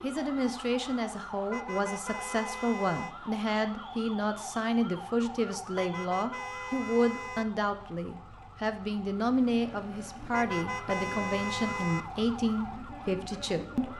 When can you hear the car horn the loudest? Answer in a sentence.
The volume of the car horn peaks at 11 seconds.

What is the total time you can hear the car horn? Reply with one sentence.
You can hear the car horn for 5 seconds altogether.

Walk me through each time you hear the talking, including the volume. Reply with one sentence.
You can hear the talking from 0.0 to 13.9 s, at a steady volume.